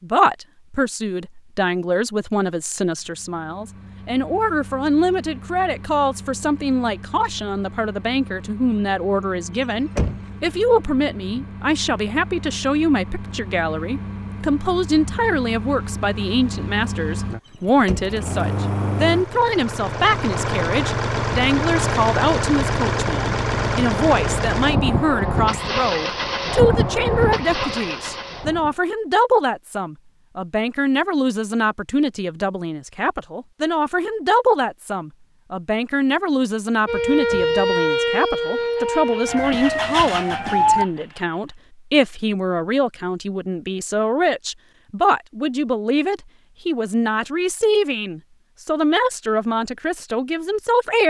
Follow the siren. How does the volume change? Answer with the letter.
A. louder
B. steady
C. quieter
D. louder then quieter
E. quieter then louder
C.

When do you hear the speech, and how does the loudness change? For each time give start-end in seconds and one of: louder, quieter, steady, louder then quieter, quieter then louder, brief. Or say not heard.
0.0-51.0 steady.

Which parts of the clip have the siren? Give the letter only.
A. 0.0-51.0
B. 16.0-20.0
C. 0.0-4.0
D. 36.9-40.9
D.